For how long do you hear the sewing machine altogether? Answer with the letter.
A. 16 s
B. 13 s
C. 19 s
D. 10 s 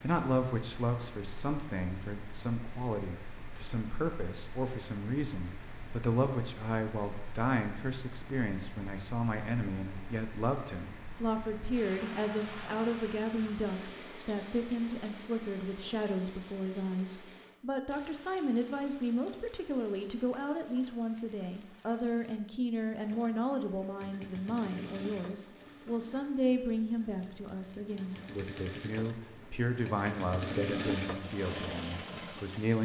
D.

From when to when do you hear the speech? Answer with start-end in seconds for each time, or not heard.
0.0-32.8.